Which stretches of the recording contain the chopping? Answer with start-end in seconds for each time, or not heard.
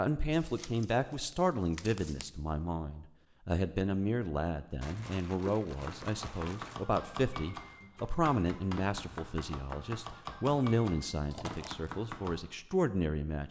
5.8-12.3.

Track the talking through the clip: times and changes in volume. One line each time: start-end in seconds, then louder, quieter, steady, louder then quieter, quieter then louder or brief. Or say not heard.
0.0-13.4 steady.